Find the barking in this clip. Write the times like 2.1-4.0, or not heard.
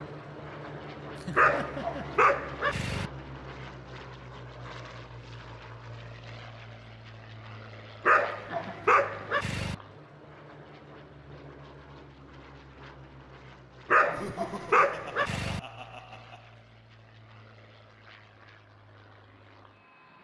1.4-3.1, 8.1-9.8, 13.9-15.6.